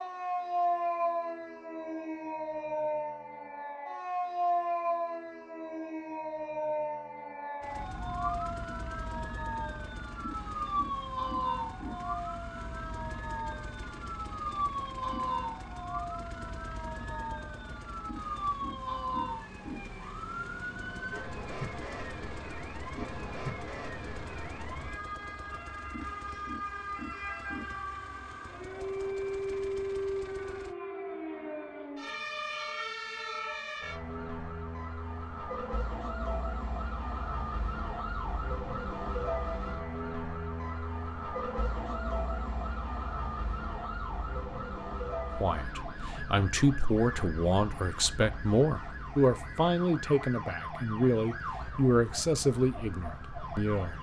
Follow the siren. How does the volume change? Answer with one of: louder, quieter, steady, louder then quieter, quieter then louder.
quieter.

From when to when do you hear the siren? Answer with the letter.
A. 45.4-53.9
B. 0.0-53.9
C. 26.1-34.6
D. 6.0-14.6
B.